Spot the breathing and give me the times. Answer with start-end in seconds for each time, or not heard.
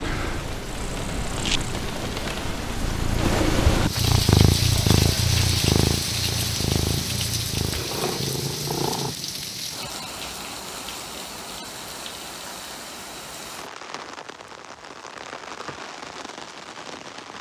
not heard.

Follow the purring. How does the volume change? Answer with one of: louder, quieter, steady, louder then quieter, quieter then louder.
louder then quieter.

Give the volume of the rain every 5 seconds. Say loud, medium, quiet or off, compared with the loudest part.
loud, loud, medium, medium.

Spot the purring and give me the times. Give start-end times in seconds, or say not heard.
0.0-9.2.